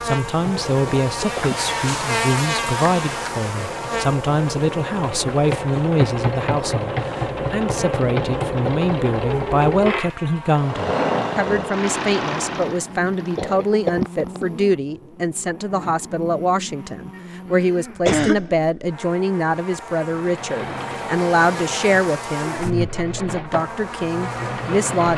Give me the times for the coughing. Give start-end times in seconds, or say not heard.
0.8-1.6, 13.3-14.7, 17.1-18.8.